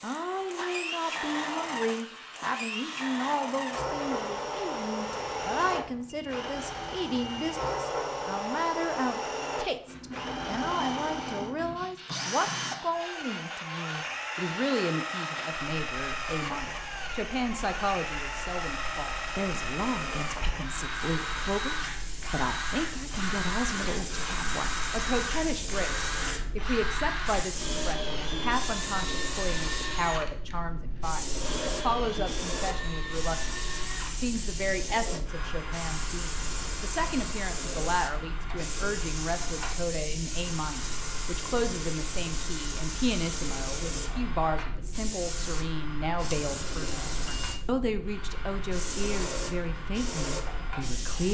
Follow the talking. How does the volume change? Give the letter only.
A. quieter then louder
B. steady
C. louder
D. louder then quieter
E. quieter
B.